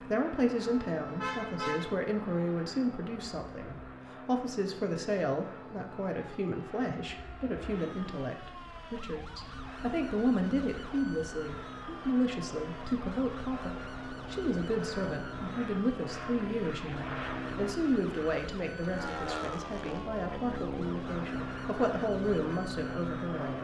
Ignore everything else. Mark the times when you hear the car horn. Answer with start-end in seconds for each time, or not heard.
1.1-2.0.